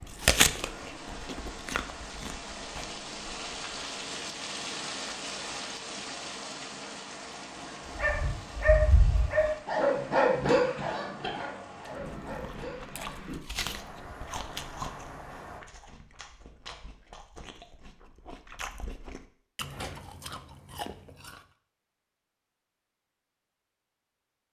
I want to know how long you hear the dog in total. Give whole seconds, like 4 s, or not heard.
5 s.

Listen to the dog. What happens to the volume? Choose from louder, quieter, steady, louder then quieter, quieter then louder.
quieter.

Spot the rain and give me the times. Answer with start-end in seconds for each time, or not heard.
0.0-15.6.